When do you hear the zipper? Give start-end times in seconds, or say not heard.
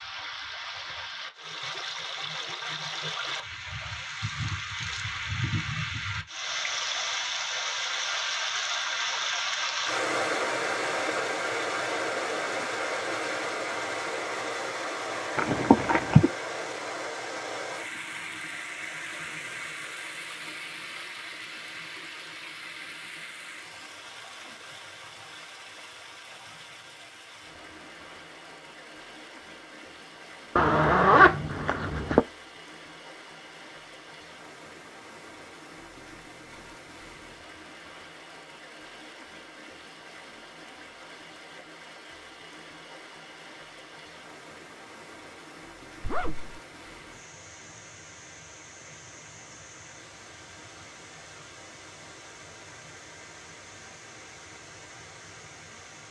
15.3-16.3, 30.6-32.2, 46.0-46.6.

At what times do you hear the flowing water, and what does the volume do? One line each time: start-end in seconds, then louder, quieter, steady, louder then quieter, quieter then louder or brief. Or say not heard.
0.0-56.0 quieter.